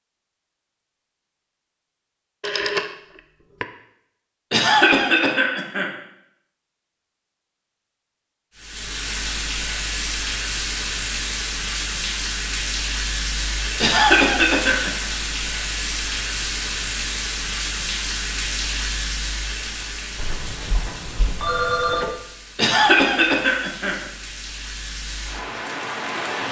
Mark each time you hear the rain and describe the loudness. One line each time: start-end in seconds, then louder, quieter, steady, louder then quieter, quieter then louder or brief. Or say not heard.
8.6-26.4 quieter.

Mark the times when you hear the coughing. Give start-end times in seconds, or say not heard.
4.5-5.9, 13.8-15.1, 22.6-24.1.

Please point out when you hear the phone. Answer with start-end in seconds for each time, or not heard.
2.4-3.0, 20.1-22.2.